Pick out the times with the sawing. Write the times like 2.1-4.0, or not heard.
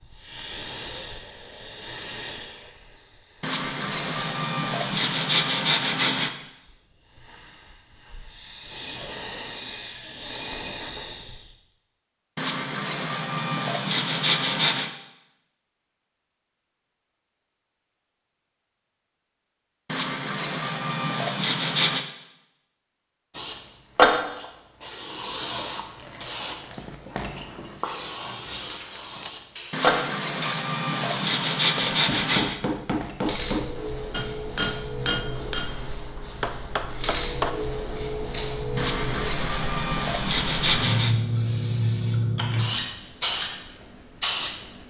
3.4-6.3, 12.3-14.9, 19.9-22.1, 29.7-32.6, 38.8-41.1.